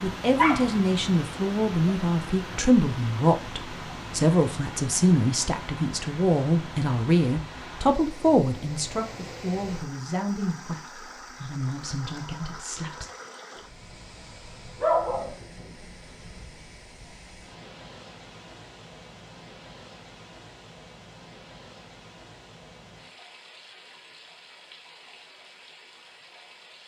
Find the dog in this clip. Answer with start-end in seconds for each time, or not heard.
0.3-0.8, 14.8-15.3.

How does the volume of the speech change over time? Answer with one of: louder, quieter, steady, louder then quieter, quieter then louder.
quieter.